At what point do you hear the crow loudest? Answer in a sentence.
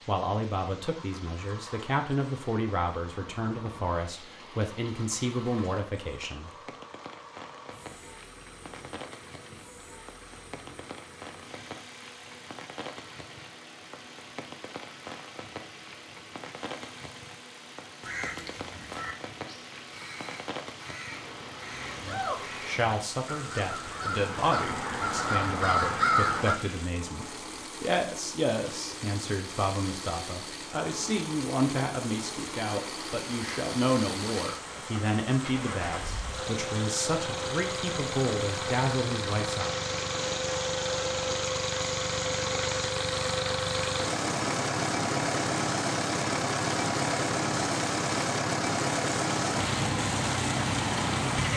The loudest moment of the crow is at 26 seconds.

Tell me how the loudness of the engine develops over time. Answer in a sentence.
The volume of the engine goes up.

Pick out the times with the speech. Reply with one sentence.
You can hear the speech from 0.1 to 6.5 s and from 21.9 to 39.9 s.